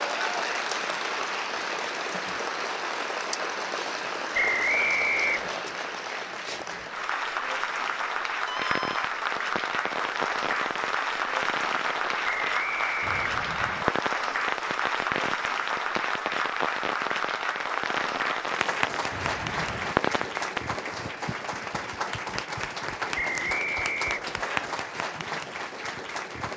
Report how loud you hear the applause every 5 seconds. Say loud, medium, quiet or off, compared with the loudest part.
loud, loud, loud, loud, loud, medium.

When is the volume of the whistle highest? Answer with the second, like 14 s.
5 s.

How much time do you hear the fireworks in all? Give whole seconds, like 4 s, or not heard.
12 s.